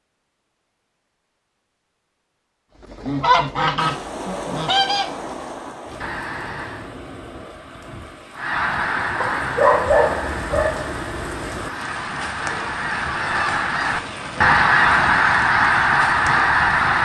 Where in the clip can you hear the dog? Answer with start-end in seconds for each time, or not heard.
9.2-10.9.